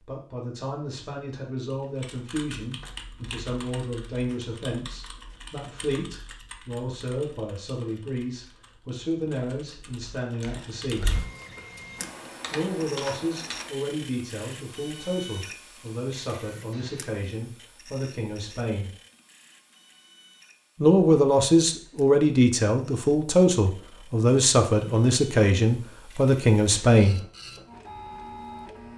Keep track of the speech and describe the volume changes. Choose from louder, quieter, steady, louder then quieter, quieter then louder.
louder.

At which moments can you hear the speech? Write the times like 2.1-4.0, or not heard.
0.1-11.1, 12.5-18.9, 20.8-27.2.